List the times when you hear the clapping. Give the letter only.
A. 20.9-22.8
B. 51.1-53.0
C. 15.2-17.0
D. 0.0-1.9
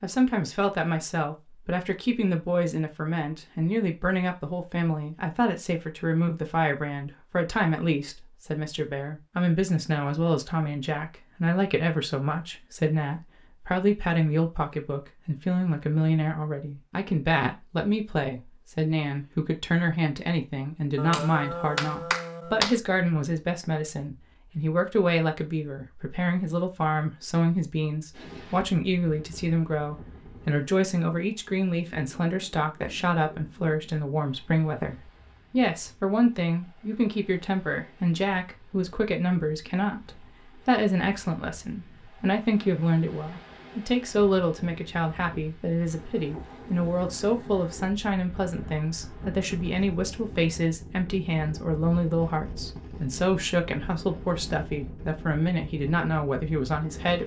A.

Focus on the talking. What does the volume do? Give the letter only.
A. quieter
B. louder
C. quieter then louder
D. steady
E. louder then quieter
D.